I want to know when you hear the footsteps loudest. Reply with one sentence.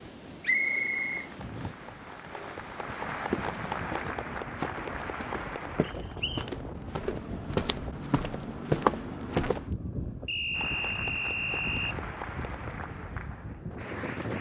The loudest moment of the footsteps is at 9 seconds.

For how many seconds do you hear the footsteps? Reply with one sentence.
You can hear the footsteps for 7 seconds altogether.